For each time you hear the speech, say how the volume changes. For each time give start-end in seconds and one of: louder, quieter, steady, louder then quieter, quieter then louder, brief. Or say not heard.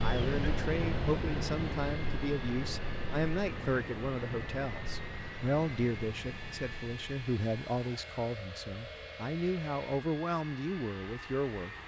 0.0-11.8 steady.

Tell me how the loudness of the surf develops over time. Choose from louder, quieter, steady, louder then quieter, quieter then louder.
quieter.